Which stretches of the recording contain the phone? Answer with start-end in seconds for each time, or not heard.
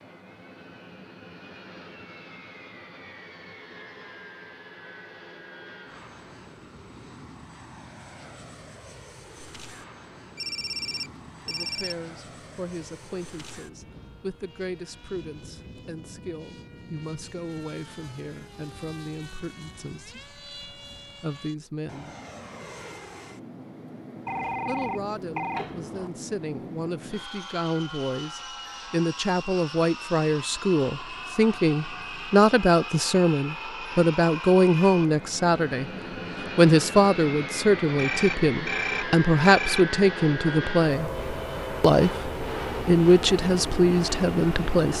10.3-11.9, 24.2-26.1, 38.0-39.9.